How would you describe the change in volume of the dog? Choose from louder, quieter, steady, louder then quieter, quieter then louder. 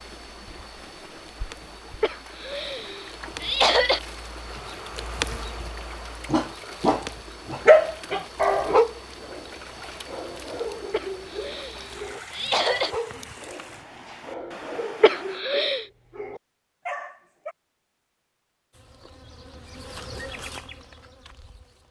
quieter.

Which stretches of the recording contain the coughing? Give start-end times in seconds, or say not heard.
2.0-4.0, 10.9-12.9, 15.0-15.8.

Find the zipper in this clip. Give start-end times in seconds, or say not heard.
not heard.